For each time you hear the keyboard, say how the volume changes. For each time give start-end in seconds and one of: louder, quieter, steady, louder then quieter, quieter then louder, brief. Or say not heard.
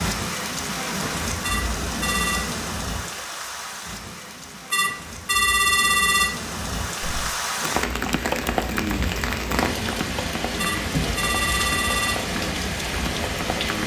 7.0-13.8 quieter.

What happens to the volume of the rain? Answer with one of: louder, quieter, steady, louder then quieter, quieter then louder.
quieter then louder.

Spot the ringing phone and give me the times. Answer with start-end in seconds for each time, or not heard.
1.4-2.5, 4.7-6.3, 10.6-12.2.